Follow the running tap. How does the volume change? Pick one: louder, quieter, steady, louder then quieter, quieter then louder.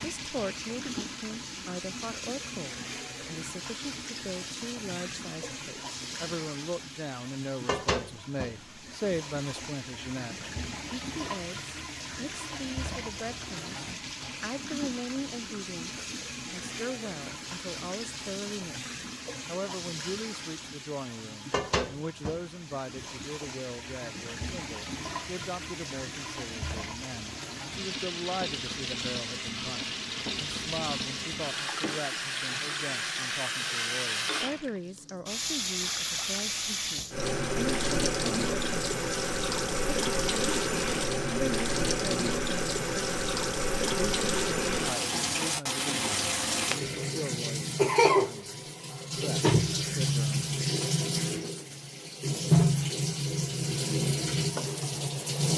louder.